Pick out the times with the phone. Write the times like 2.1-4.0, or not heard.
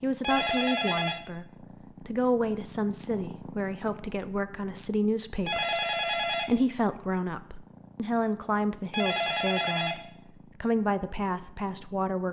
0.2-1.2, 5.5-6.5, 8.9-9.9.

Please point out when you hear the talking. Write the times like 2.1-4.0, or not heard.
0.0-12.2.